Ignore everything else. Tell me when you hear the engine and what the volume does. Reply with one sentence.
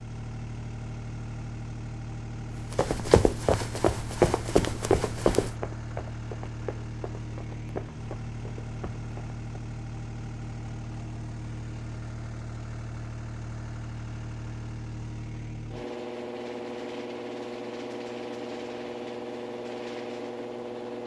The engine can be heard from 0.0 to 21.0 s, at a steady volume.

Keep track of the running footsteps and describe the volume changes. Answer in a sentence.
The volume of the running footsteps goes down.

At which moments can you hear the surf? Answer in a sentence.
The surf can't be heard in this clip.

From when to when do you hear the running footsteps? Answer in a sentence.
You can hear the running footsteps from 2.7 to 9.6 s.